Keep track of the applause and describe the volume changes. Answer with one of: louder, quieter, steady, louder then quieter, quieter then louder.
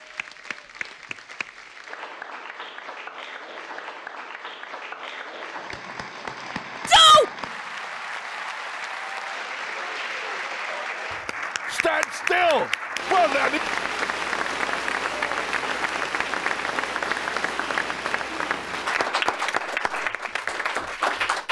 louder.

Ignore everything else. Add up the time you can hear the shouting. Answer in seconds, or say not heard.
2 s.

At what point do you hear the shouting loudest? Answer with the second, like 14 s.
7 s.